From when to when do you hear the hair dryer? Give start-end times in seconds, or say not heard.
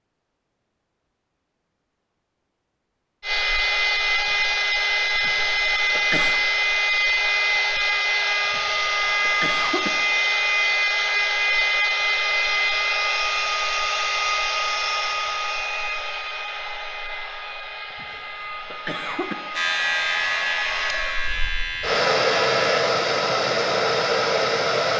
3.2-24.9.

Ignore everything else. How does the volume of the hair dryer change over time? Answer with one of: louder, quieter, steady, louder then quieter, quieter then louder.
quieter then louder.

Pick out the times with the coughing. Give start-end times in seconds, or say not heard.
5.2-6.4, 8.4-9.9, 17.9-19.4.